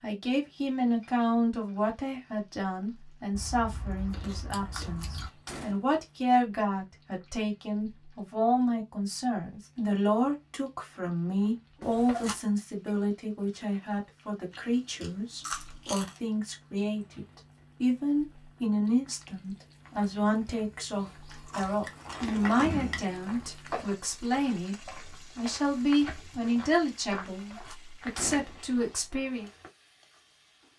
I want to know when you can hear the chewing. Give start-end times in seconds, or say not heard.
3.3-5.3, 14.5-16.2, 21.3-23.1.